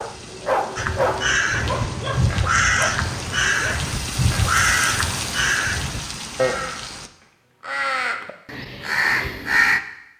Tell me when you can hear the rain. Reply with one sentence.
You can hear the rain from 0.0 to 7.1 s.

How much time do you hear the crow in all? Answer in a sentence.
You can hear the crow for 9 seconds altogether.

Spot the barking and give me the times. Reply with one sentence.
You can hear the barking from 0.0 to 3.9 s.